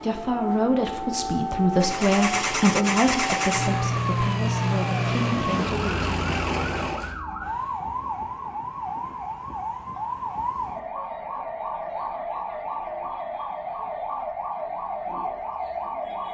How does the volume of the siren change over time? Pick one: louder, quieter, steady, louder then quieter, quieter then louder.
steady.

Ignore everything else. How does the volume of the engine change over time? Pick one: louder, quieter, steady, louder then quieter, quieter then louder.
steady.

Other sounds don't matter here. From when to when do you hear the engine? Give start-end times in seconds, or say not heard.
1.7-7.2.